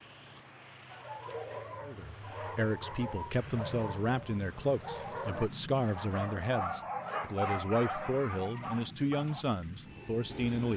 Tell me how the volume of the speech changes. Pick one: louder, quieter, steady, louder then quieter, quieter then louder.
steady.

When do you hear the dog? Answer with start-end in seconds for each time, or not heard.
0.9-9.4.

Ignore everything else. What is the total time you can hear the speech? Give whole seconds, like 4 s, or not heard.
9 s.